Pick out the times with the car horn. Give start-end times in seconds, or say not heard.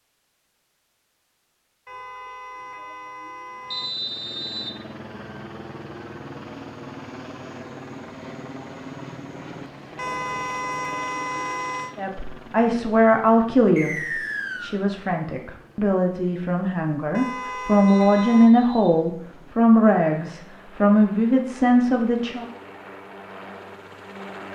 1.9-3.9, 9.9-11.9, 17.1-18.5.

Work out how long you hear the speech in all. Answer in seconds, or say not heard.
10 s.